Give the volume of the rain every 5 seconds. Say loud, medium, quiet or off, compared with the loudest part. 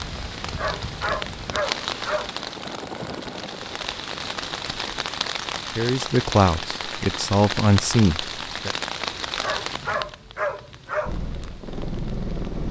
loud, loud, quiet.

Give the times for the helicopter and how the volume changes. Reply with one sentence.
You can hear the helicopter from 0.0 to 5.0 s, getting louder then quieter; and briefly from 11.1 to 12.6 s.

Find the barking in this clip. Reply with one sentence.
You can hear the barking from 0.6 to 2.3 s and from 9.4 to 11.2 s.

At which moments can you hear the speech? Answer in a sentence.
The speech can be heard from 5.8 to 8.7 s.